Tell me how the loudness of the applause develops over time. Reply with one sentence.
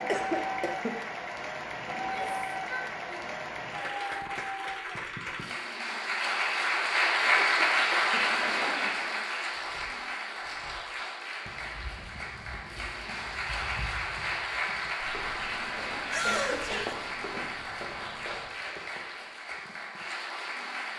The volume of the applause goes up, then down.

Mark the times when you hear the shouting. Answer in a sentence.
The shouting can be heard from 1.9 to 3.4 s and from 16.1 to 16.9 s.